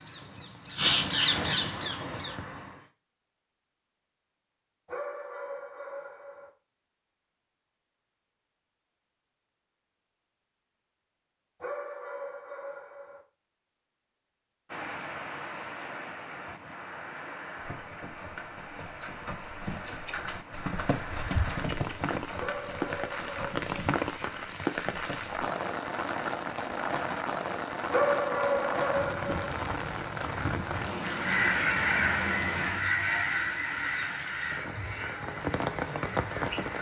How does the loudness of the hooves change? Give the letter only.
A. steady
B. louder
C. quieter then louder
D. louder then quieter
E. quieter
D.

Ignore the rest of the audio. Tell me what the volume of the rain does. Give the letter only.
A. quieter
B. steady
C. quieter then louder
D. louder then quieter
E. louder
E.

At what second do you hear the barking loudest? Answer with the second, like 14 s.
28 s.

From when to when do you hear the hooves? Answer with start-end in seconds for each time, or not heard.
17.6-25.4.